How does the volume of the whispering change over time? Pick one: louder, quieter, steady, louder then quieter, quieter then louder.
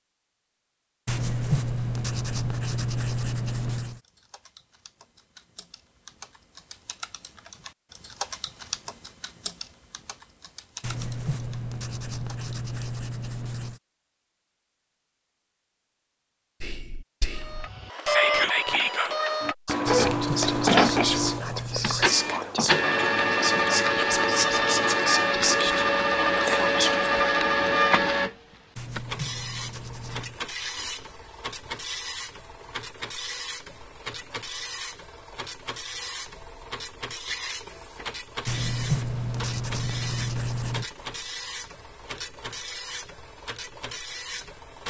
steady.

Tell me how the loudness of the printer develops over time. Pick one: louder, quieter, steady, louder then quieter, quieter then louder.
quieter.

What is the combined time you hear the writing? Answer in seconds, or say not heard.
12 s.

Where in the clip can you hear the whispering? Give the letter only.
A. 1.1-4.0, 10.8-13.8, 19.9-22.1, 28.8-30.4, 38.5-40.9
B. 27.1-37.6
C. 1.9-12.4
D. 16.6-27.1
D.